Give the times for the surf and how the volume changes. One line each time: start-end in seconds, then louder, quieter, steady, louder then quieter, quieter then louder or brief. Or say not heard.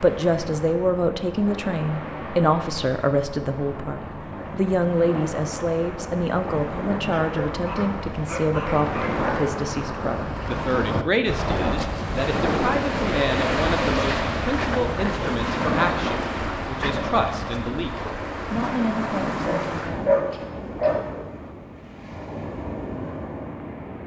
0.0-24.0 louder then quieter.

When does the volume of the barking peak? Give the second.
20 s.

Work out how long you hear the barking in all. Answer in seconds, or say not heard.
4 s.